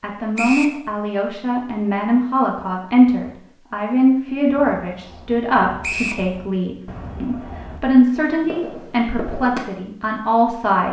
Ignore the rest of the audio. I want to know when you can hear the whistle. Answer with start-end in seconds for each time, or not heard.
0.3-0.8, 5.8-6.2.